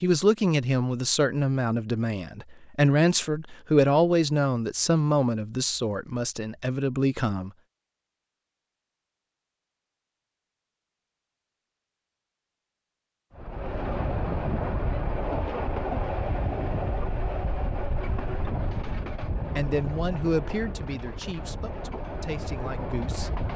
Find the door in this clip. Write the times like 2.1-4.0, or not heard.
not heard.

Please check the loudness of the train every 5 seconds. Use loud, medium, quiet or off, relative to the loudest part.
off, off, loud, loud, medium.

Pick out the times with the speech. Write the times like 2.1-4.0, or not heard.
0.0-7.5, 19.6-23.3.